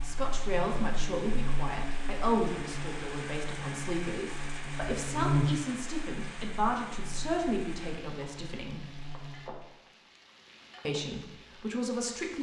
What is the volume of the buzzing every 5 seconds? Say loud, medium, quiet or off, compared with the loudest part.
medium, loud, off.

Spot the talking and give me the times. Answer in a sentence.
You can hear the talking from 0.0 to 8.8 s and from 10.8 to 12.3 s.